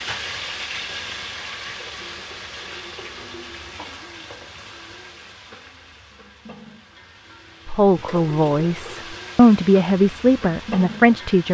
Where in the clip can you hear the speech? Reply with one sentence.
The speech can be heard from 7.7 to 11.4 s.